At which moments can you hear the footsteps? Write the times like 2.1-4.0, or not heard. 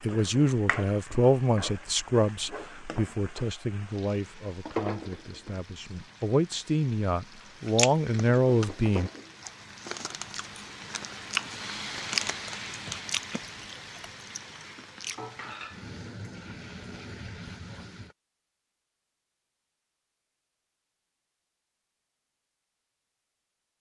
not heard.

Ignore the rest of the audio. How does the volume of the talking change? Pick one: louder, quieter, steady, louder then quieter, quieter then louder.
quieter then louder.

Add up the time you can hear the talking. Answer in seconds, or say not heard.
9 s.